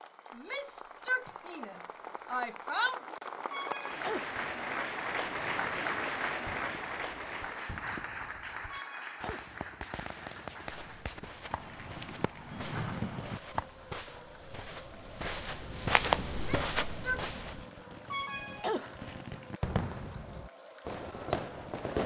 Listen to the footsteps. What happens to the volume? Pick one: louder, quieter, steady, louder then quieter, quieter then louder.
louder.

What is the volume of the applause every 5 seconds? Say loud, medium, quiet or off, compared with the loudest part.
loud, loud, quiet, quiet, quiet.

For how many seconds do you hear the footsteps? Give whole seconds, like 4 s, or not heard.
7 s.